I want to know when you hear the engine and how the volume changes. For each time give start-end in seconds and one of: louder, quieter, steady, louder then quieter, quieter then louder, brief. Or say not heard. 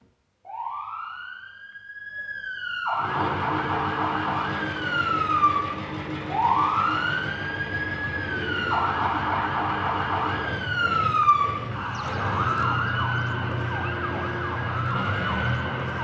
2.9-15.9 steady.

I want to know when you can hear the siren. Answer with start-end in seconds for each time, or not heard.
0.0-15.9.